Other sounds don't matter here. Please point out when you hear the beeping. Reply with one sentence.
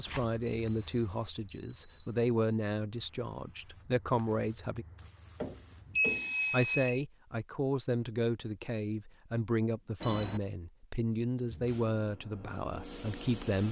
The beeping can be heard from 0.1 to 2.1 s, from 5.4 to 7.0 s and from 10.0 to 10.4 s.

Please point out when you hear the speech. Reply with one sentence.
You can hear the speech from 0.0 to 4.8 s and from 6.5 to 13.6 s.